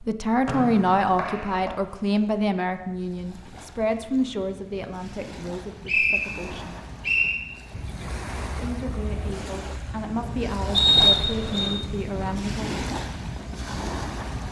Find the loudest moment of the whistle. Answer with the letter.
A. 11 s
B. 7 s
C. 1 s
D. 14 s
A.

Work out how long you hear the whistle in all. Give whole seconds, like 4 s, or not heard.
4 s.